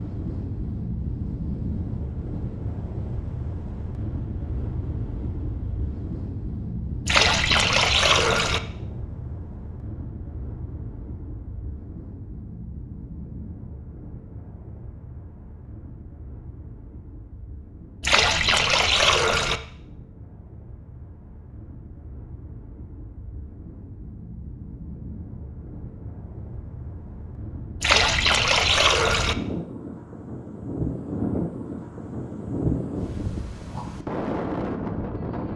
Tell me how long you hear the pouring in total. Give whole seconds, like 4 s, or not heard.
5 s.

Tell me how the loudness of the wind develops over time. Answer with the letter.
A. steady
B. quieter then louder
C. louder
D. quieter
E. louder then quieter
B.